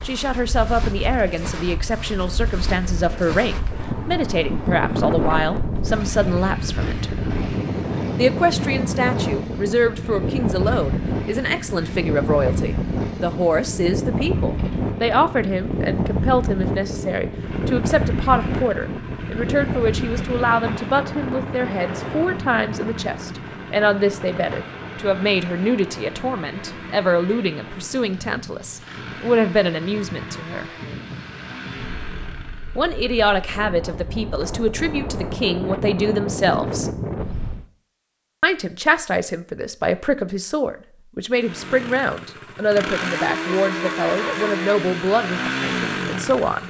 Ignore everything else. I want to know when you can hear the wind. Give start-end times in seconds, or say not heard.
0.0-37.6.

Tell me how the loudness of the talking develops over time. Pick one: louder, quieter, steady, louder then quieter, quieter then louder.
steady.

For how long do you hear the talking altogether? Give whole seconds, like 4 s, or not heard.
42 s.